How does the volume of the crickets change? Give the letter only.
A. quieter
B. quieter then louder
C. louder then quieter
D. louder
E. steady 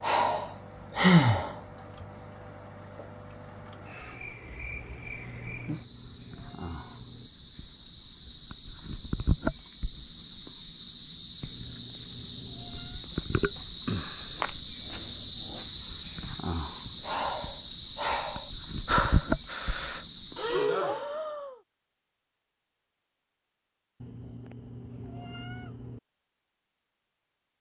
D.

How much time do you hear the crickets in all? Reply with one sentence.
You can hear the crickets for 21 seconds altogether.